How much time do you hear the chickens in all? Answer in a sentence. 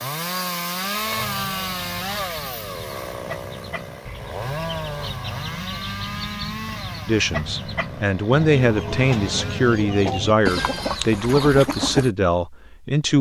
You can hear the chickens for 11 seconds altogether.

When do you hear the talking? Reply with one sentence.
The talking can be heard from 7.0 to 13.1 s.